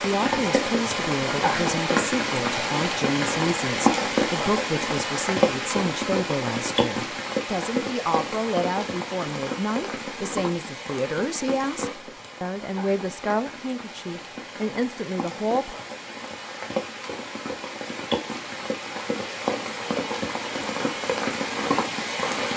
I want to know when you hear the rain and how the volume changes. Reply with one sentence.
The rain can be heard from 0.0 to 22.5 s, getting quieter then louder.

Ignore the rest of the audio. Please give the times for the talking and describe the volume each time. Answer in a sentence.
You can hear the talking from 0.0 to 15.8 s, at a steady volume.